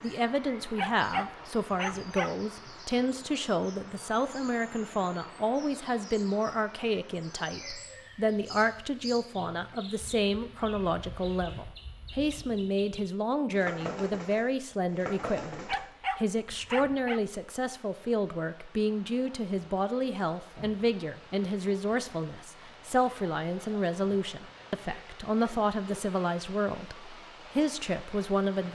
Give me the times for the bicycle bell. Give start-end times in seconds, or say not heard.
not heard.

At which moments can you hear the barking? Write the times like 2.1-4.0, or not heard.
0.8-2.4, 15.7-17.2.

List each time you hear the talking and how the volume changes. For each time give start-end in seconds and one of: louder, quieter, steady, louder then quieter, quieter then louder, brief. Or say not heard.
0.0-28.7 steady.